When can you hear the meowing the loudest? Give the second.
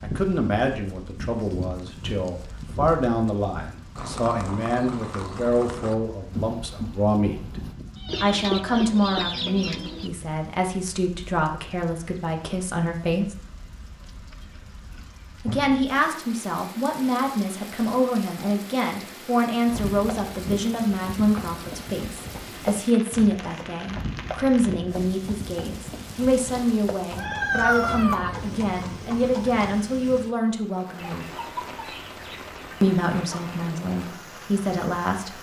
28 s.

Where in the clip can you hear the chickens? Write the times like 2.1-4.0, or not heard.
8.1-10.1, 30.9-33.6.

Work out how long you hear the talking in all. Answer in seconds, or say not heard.
31 s.